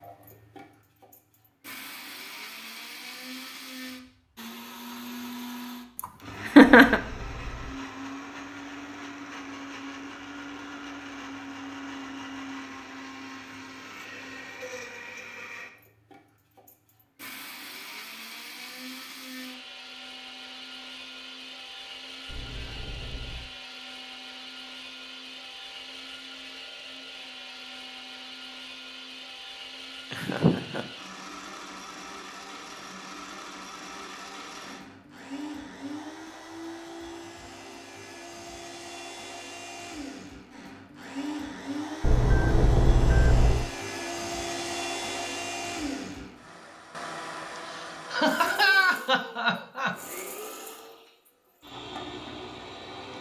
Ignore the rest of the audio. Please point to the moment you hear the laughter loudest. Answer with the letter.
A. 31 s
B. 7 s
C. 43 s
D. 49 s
B.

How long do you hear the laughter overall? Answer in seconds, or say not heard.
4 s.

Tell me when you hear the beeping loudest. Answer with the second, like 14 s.
43 s.